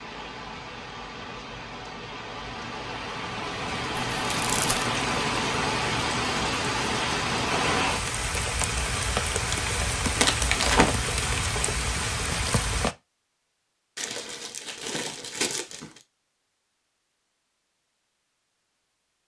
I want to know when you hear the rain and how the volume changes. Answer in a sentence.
The rain can be heard from 0.0 to 12.9 s, getting louder.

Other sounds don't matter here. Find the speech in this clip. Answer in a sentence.
The speech can't be heard in this clip.